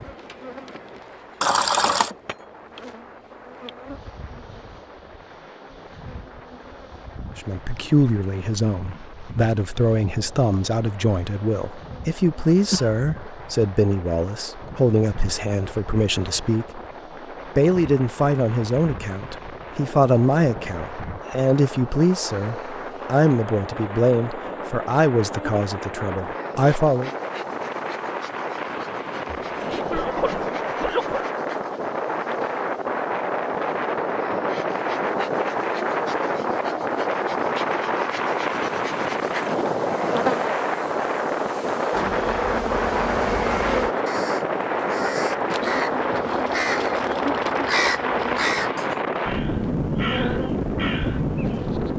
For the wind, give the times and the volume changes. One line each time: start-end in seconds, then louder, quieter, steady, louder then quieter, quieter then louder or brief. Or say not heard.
0.0-51.9 louder.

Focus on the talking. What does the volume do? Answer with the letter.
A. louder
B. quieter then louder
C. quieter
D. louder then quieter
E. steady
E.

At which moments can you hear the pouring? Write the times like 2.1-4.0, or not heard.
1.4-2.1.